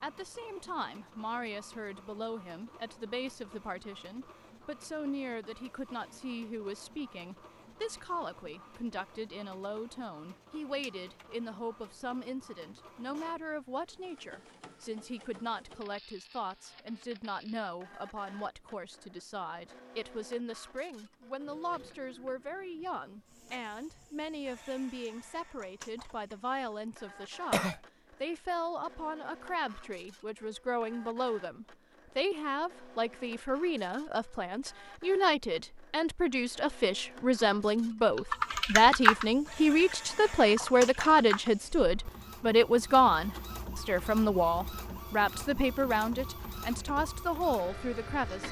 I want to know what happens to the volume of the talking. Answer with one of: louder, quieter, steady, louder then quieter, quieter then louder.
louder.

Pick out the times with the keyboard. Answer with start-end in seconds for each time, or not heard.
38.1-41.5.